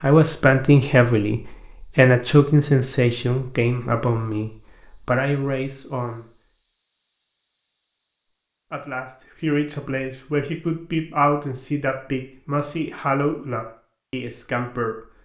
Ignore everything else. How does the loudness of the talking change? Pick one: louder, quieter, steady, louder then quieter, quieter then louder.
quieter.